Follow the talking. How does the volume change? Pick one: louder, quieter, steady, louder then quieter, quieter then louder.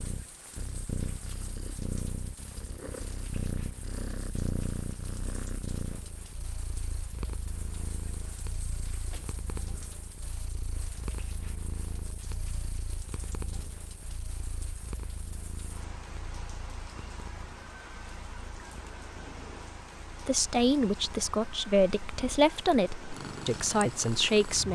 quieter then louder.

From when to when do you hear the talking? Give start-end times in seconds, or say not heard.
20.2-24.7.